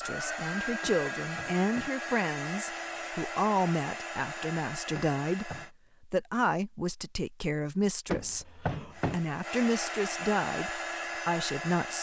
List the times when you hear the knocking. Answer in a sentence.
The knocking can be heard from 0.8 to 1.9 s, from 5.0 to 5.7 s and from 8.1 to 9.2 s.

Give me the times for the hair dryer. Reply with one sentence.
You can hear the hair dryer from 0.0 to 5.7 s and from 8.9 to 11.9 s.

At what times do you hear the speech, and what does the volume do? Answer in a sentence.
You can hear the speech from 0.0 to 11.9 s, at a steady volume.